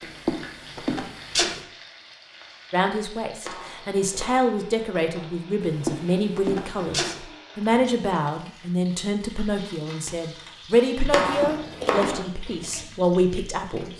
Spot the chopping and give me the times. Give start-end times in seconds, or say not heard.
3.5-4.5, 11.1-12.2.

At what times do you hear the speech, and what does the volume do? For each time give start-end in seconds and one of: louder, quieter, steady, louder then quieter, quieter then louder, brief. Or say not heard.
2.7-13.9 steady.